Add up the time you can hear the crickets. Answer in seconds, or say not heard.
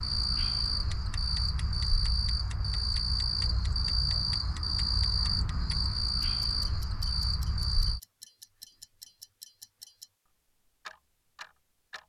8 s.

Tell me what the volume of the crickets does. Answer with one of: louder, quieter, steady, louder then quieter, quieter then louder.
steady.